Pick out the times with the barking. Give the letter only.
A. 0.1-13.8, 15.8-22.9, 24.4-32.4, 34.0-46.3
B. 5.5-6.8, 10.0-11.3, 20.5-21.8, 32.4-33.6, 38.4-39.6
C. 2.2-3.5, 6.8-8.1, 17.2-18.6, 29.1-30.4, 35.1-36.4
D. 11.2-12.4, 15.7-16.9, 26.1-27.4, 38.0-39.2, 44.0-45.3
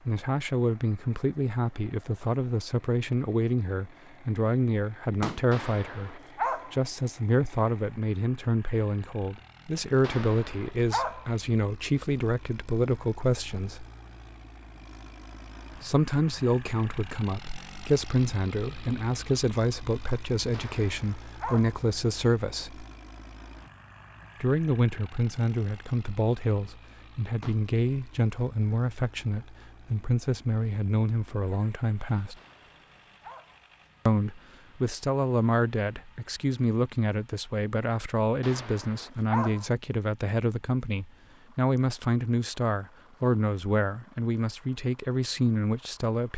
B.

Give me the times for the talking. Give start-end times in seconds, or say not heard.
0.1-13.8, 15.8-22.9, 24.4-32.4, 34.0-46.3.